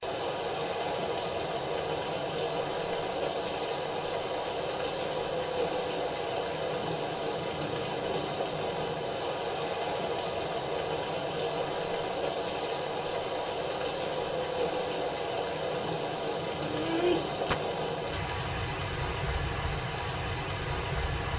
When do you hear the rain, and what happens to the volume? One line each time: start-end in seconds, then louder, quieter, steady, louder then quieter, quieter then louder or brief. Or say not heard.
0.0-21.3 steady.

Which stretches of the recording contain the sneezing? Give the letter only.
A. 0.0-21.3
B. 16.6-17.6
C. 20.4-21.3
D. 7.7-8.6
B.